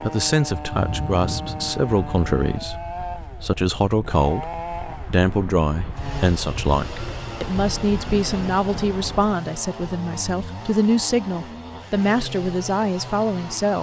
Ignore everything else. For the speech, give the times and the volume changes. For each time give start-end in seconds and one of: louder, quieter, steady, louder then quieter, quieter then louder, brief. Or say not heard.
0.0-13.7 steady.